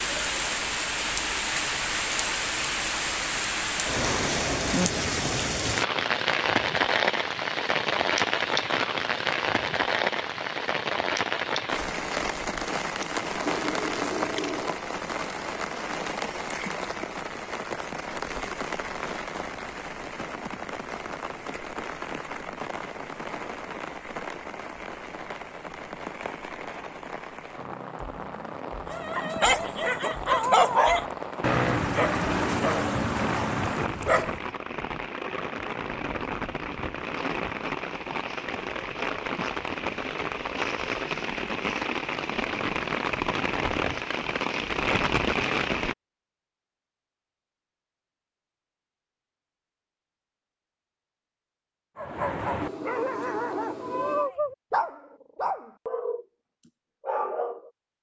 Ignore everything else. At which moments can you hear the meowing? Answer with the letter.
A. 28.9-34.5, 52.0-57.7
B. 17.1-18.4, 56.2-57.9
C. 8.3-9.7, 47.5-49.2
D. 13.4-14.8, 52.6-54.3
D.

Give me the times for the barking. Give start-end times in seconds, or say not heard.
28.9-34.5, 52.0-57.7.